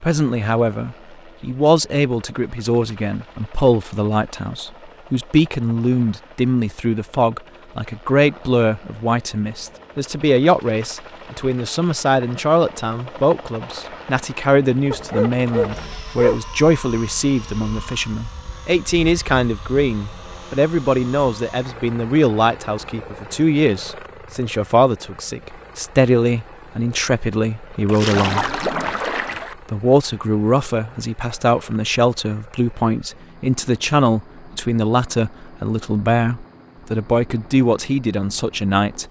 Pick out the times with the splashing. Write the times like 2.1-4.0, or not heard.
27.9-29.6.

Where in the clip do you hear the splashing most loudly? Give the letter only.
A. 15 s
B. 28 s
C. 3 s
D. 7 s
B.